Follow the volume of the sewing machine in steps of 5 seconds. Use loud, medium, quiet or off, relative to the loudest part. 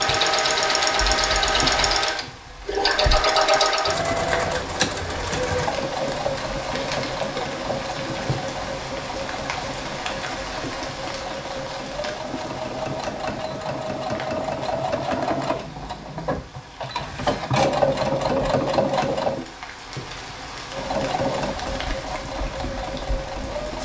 loud, medium, medium, loud, medium.